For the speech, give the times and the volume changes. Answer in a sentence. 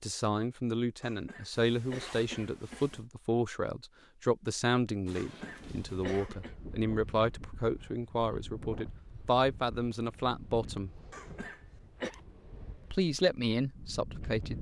The speech can be heard from 0.0 to 10.9 s, at a steady volume; and briefly from 12.8 to 14.5 s.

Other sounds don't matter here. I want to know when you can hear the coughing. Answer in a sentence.
You can hear the coughing from 1.0 to 3.0 s, from 5.2 to 6.5 s and from 11.1 to 12.1 s.